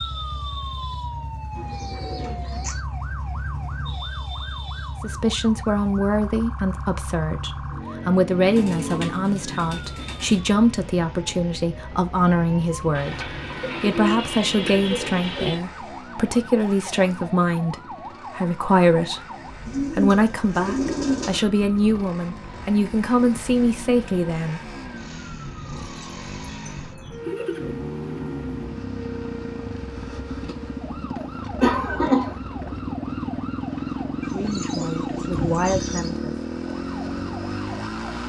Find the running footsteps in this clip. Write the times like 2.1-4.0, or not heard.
not heard.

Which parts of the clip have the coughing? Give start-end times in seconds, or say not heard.
31.6-32.4.